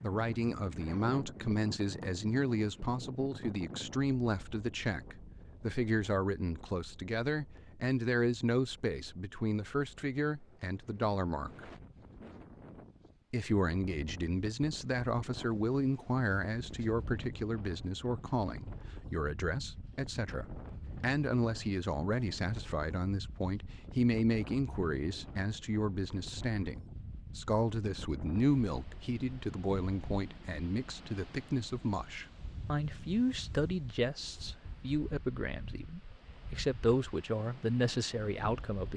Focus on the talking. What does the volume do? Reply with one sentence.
The loudness of the talking stays about the same.